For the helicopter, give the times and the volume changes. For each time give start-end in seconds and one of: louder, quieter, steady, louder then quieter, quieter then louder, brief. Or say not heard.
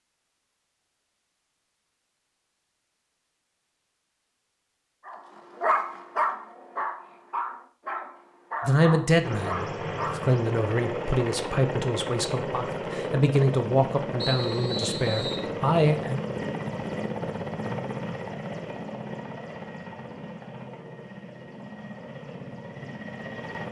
9.2-23.6 quieter.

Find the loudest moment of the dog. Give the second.
6 s.